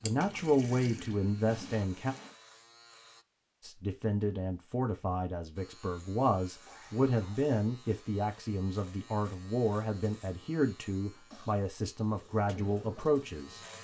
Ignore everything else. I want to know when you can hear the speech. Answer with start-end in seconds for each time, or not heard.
0.0-2.1, 3.6-13.6.